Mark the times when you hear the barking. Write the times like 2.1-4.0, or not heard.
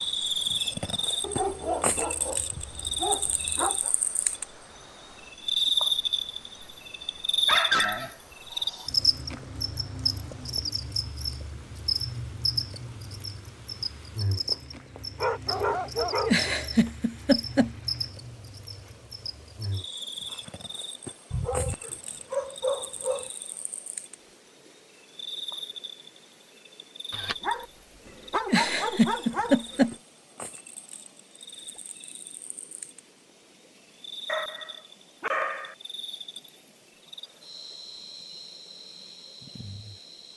1.2-3.9, 7.5-8.9, 14.4-16.5, 21.3-23.3, 27.1-29.9, 34.2-35.8.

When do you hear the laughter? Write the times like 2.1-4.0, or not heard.
16.2-17.7, 28.4-29.9.